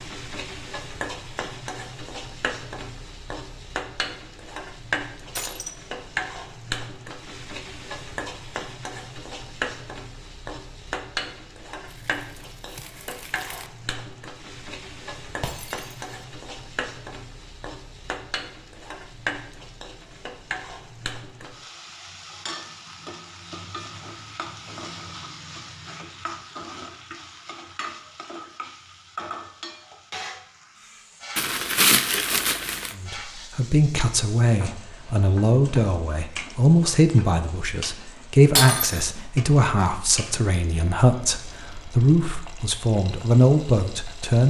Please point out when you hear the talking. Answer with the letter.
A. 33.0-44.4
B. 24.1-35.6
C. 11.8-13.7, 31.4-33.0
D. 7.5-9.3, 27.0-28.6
A.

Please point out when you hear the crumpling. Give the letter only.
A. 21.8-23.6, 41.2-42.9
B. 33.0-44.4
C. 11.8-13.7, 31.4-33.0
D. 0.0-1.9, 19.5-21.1
C.